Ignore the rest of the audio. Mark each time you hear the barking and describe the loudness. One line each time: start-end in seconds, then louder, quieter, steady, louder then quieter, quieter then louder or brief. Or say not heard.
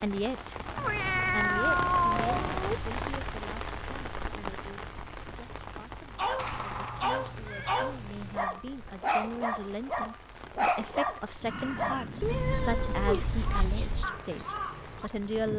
6.2-12.1 steady.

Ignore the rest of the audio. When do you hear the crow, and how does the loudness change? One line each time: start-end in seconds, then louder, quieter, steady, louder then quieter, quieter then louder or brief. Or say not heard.
11.4-15.5 steady.